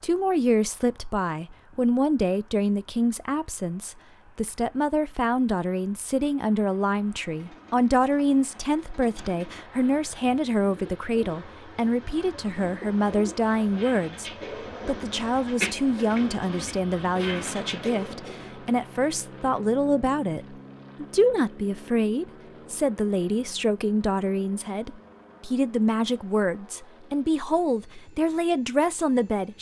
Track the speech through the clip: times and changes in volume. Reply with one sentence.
The speech can be heard from 0.0 to 29.5 s, at a steady volume.